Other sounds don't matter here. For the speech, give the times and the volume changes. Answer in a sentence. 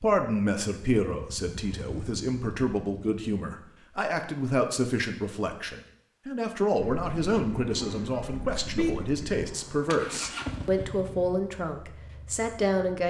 You can hear the speech from 0.0 to 13.0 s, at a steady volume.